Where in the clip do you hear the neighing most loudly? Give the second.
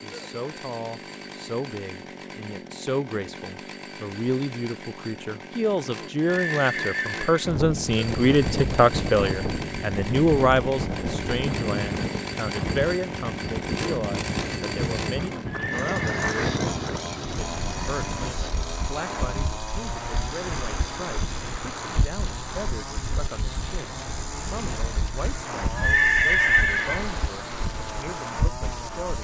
26 s.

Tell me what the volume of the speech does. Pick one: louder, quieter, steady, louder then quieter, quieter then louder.
louder then quieter.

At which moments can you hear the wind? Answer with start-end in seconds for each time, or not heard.
7.4-29.1.